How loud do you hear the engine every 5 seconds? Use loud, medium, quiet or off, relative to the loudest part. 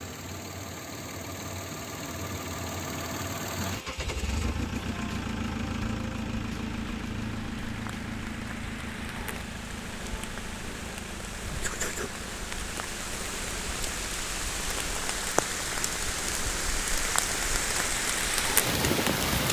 loud, loud, medium, quiet.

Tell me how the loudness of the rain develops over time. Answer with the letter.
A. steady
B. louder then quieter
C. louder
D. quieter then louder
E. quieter
C.